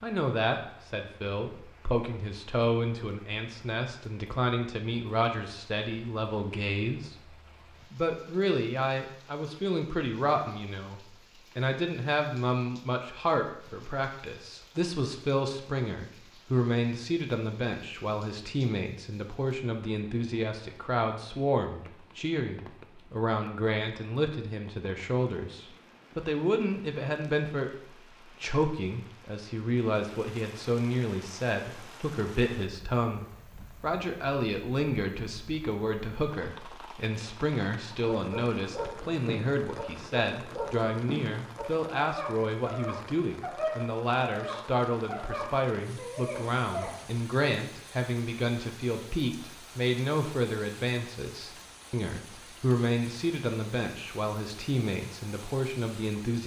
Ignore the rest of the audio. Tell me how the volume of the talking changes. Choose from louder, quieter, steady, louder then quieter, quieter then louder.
steady.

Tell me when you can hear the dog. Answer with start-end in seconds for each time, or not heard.
38.1-47.0.